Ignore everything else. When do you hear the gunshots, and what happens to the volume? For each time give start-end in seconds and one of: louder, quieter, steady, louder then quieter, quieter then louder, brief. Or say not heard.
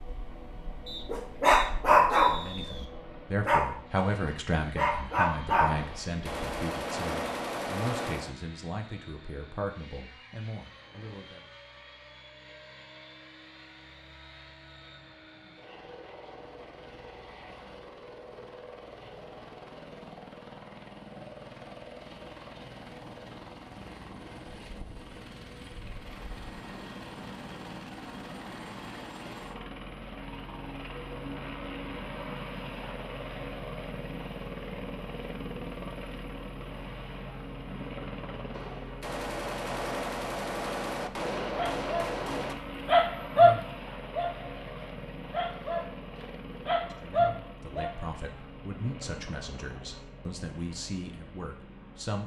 5.8-8.3 brief
38.5-42.5 steady.